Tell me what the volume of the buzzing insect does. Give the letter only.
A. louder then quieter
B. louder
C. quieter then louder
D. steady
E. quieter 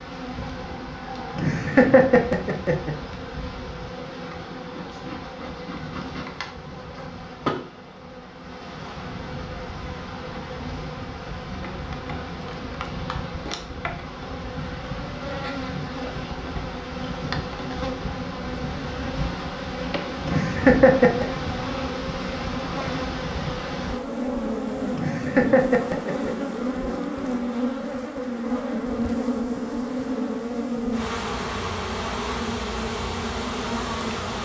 B.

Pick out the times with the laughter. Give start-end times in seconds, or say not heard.
1.4-3.0, 20.2-21.2, 24.9-26.3.